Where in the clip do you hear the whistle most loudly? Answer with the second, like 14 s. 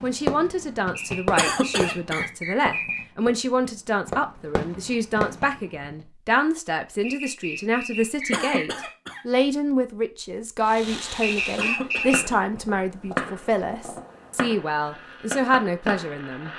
12 s.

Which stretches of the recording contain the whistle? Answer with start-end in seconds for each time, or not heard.
0.9-3.0, 7.0-8.8, 11.2-12.2.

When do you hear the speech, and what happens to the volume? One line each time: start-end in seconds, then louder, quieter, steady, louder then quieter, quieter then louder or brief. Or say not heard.
0.0-16.5 steady.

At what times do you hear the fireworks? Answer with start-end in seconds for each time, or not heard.
0.0-6.0, 10.7-16.5.